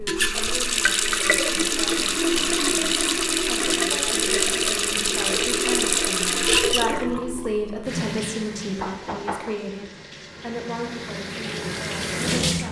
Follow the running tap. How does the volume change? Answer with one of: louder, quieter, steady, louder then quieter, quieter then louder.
quieter.